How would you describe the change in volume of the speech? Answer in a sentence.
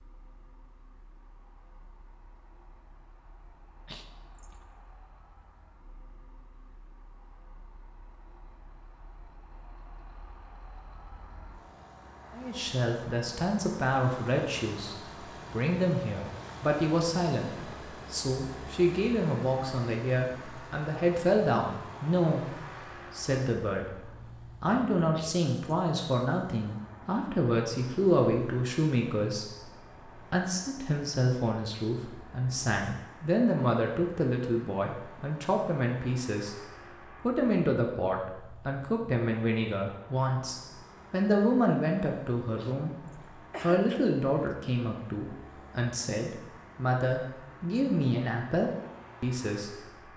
The loudness of the speech stays about the same.